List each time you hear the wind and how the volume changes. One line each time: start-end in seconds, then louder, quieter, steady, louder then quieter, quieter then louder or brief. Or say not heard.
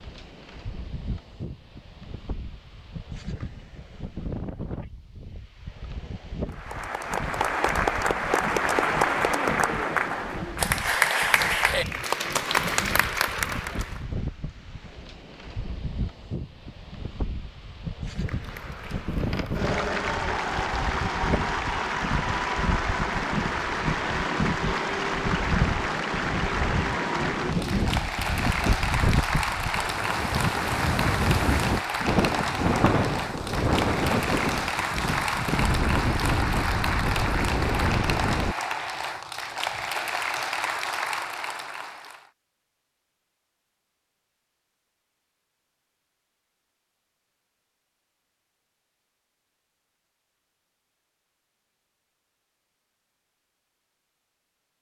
0.0-38.5 louder.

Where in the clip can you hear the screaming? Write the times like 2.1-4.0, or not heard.
not heard.